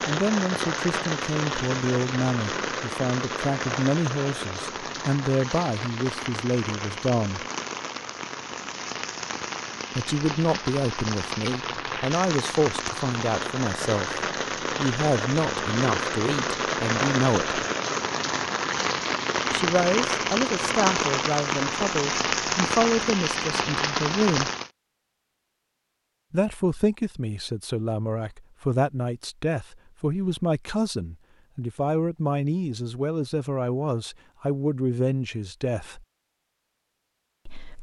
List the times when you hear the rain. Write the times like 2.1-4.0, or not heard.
0.0-24.7.